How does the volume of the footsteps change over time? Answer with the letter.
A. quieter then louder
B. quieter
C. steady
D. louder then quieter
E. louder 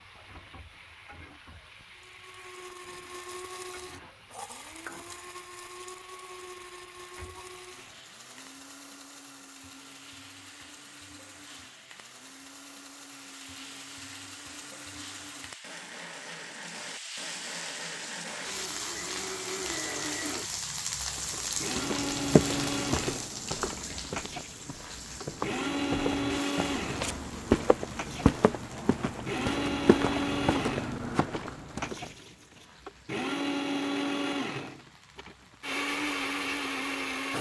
A.